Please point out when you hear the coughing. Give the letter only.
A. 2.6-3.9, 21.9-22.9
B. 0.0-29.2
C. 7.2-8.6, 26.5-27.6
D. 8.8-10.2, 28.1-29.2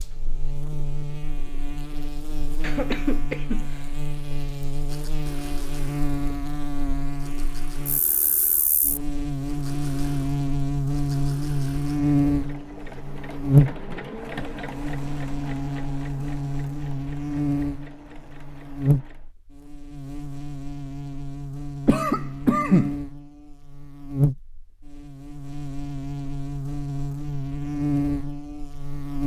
A.